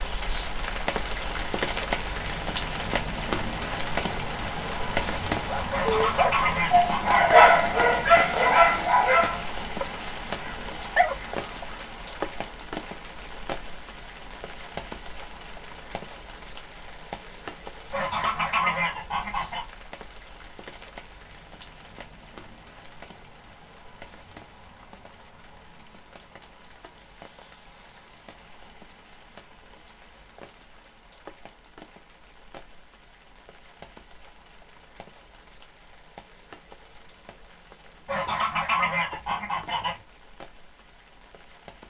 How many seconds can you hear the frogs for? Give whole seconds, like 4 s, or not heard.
not heard.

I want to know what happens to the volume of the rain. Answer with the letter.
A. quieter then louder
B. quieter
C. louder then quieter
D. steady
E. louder
B.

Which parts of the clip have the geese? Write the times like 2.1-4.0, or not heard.
5.7-7.2, 17.9-19.6, 38.0-40.0.